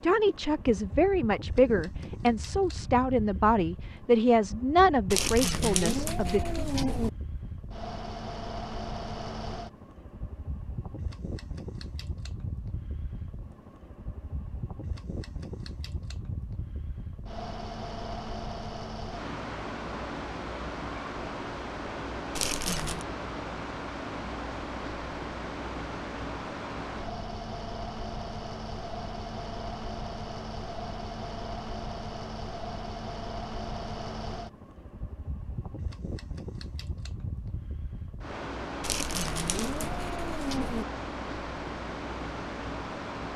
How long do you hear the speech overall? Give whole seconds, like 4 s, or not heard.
7 s.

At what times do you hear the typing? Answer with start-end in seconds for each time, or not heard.
not heard.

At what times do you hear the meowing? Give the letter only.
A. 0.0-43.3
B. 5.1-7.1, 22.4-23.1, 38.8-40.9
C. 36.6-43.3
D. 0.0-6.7
B.